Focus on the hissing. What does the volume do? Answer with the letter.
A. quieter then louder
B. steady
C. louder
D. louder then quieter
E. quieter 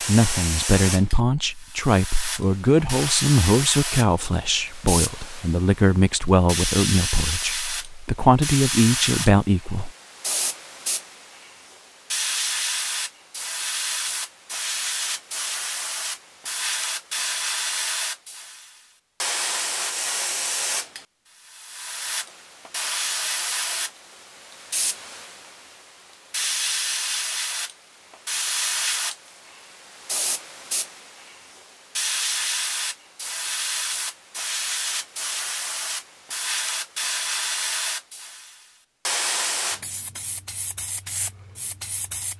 B.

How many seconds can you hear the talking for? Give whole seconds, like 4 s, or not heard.
10 s.